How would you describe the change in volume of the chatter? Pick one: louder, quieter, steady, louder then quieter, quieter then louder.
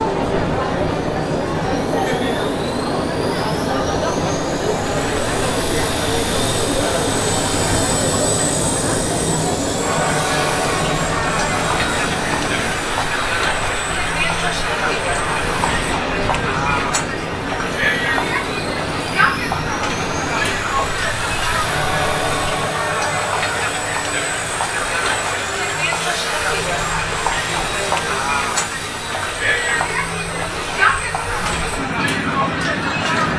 steady.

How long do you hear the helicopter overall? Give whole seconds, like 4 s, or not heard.
33 s.